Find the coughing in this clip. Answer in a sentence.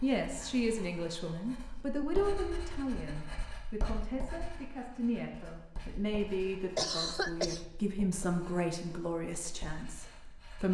You can hear the coughing from 6.8 to 7.7 s.